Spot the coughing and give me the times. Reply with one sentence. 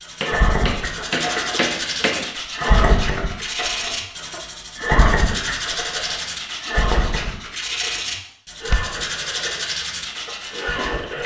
You can't hear the coughing here.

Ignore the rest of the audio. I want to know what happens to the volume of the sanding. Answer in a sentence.
The loudness of the sanding stays about the same.